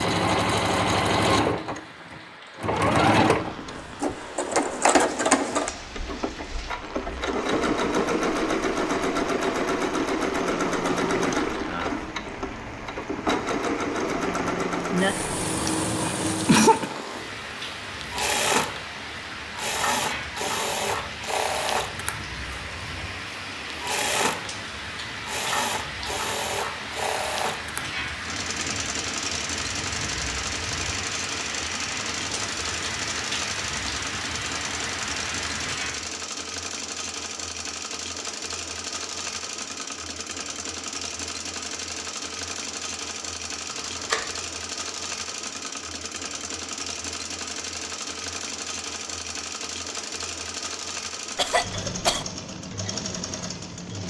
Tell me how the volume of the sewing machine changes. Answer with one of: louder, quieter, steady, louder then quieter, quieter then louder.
quieter.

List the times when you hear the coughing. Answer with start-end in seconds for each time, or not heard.
15.7-16.9, 51.4-52.2.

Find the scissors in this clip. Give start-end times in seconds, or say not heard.
43.7-44.4.